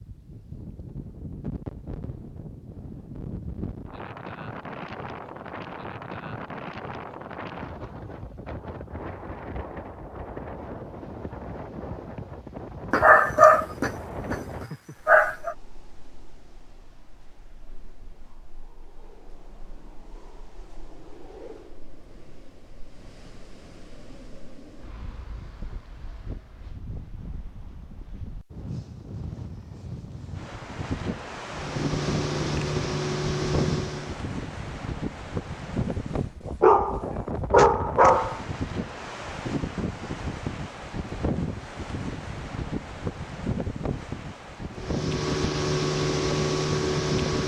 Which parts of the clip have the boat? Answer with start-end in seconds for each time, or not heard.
31.4-34.2, 44.8-47.4.